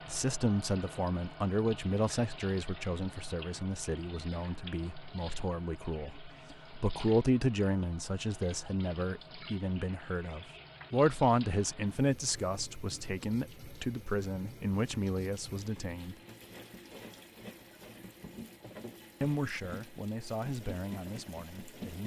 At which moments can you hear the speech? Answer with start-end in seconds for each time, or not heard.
0.1-16.1, 19.2-22.0.